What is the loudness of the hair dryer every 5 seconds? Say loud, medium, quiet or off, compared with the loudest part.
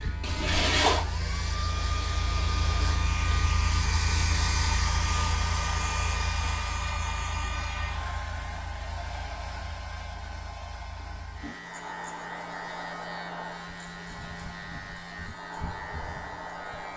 loud, loud, medium, medium.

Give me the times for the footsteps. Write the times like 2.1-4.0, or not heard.
not heard.